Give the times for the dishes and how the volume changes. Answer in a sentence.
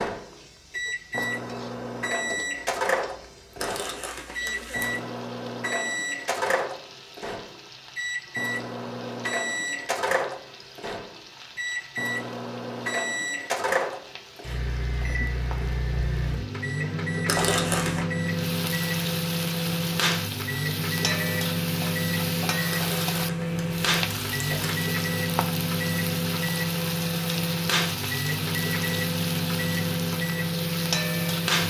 You can't hear the dishes here.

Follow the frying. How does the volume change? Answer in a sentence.
The volume of the frying goes up.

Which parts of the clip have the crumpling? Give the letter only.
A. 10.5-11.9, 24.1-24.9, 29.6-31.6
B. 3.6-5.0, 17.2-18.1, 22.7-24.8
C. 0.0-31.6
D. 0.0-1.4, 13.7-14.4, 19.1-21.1
B.